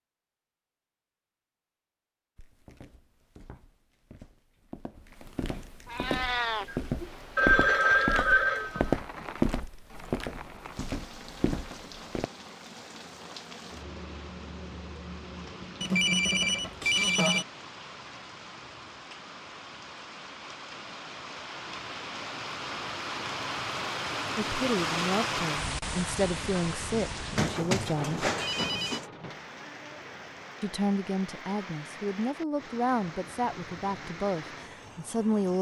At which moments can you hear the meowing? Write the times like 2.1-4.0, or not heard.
5.8-6.7.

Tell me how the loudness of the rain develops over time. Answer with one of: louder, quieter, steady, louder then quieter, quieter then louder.
louder then quieter.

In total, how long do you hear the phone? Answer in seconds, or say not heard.
5 s.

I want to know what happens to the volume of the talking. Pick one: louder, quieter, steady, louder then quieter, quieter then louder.
steady.